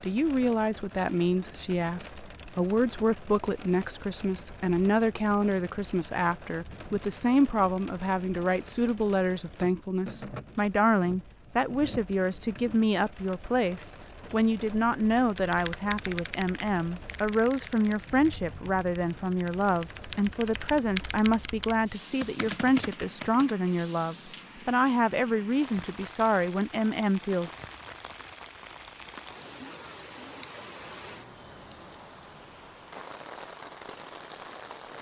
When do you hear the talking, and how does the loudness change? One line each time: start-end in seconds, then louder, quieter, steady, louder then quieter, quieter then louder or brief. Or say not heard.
0.0-27.5 steady.